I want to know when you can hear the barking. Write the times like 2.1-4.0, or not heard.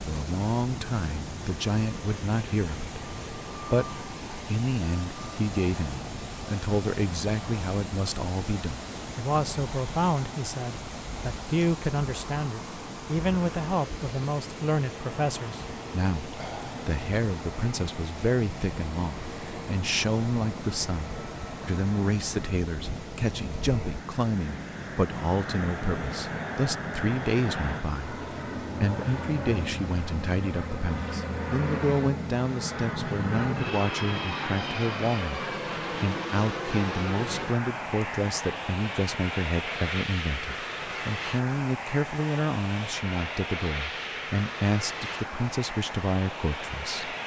not heard.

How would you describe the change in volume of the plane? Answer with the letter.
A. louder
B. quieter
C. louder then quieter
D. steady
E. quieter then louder
A.